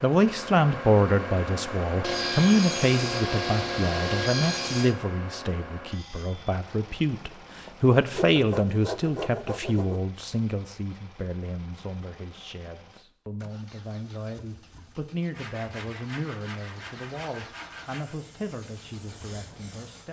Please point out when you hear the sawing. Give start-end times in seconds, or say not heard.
2.0-5.0, 7.1-10.0, 15.3-18.2.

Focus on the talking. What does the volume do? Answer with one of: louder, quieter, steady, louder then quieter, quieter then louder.
quieter.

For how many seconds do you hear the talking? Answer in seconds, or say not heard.
20 s.